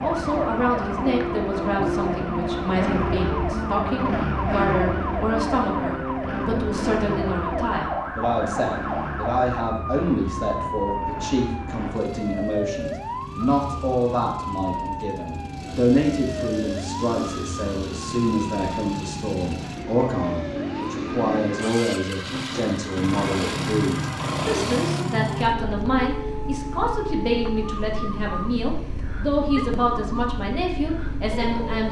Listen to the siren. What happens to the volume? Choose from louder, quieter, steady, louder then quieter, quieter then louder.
quieter.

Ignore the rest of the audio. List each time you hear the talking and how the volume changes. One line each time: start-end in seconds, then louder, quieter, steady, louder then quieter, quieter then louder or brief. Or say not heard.
0.0-31.8 steady.